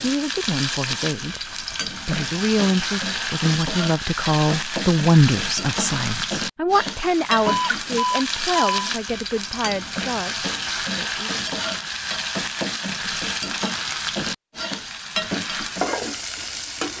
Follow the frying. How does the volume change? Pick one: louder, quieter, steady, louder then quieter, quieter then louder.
steady.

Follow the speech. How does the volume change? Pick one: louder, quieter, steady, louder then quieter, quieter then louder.
louder then quieter.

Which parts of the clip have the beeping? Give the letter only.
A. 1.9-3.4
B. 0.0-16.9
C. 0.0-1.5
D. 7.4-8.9
D.